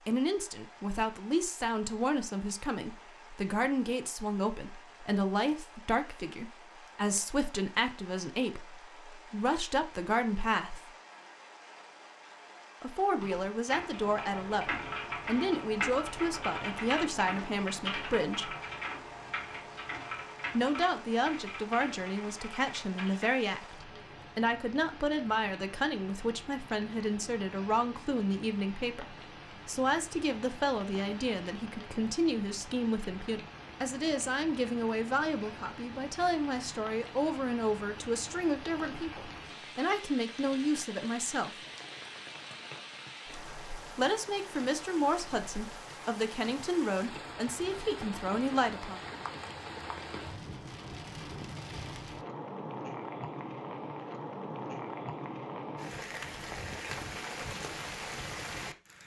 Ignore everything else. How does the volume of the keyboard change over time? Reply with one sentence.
The loudness of the keyboard goes down.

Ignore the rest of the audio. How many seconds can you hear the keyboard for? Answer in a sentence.
You can hear the keyboard for 10 seconds altogether.